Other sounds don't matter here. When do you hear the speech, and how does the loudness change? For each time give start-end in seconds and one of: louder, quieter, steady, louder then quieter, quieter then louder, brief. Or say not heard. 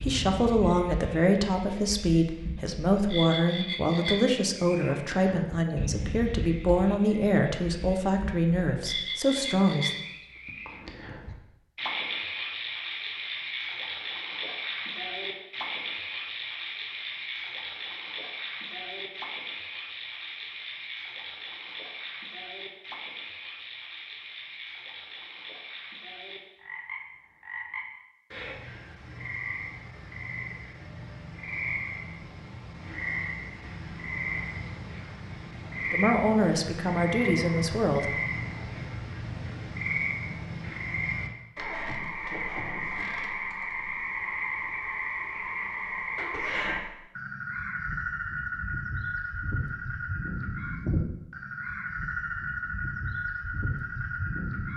0.0-9.9 steady
35.9-38.1 brief.